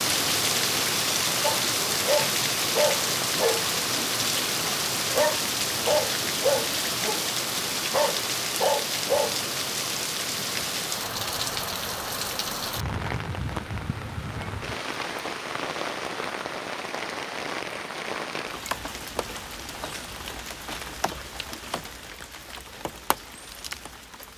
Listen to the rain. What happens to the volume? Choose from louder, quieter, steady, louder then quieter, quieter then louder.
quieter.